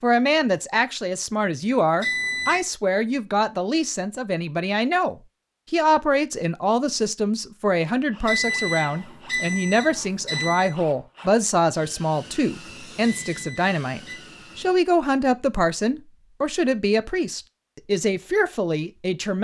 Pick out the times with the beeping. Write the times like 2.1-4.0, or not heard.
2.0-2.6, 8.2-10.8, 13.2-14.2.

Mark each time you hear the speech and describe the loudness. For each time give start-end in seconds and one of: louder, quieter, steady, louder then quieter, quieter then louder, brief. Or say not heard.
0.0-19.4 steady.